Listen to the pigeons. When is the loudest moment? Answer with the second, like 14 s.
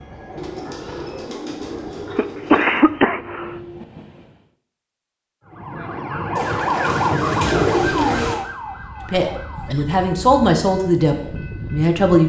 8 s.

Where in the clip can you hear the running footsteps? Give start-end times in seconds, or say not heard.
not heard.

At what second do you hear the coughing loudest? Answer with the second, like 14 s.
3 s.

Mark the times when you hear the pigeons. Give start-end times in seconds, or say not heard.
0.3-2.9, 6.3-8.3.